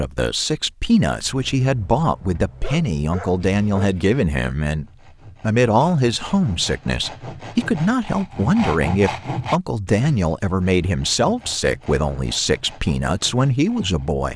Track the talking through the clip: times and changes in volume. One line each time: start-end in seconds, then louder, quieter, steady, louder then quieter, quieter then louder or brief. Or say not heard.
0.0-14.3 steady.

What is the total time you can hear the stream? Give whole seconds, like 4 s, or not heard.
not heard.